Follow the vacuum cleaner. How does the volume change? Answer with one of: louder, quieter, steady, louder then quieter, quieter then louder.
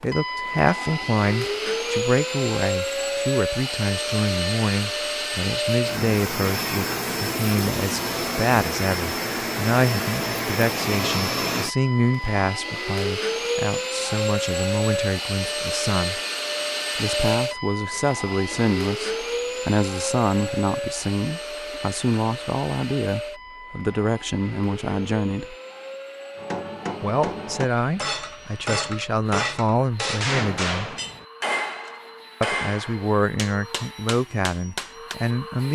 quieter.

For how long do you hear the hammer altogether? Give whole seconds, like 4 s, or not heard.
9 s.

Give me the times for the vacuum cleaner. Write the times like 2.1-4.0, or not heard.
0.0-35.7.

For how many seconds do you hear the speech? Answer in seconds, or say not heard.
32 s.